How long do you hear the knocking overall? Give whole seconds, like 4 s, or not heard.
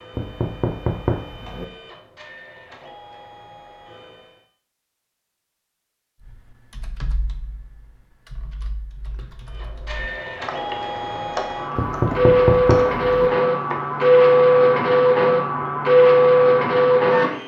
3 s.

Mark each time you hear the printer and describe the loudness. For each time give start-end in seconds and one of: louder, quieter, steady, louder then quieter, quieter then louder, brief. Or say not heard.
0.0-4.5 steady
9.4-17.4 louder.